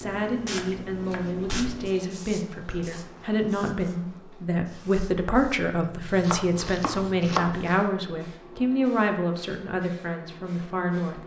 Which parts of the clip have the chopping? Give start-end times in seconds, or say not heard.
0.6-1.6, 6.2-7.8.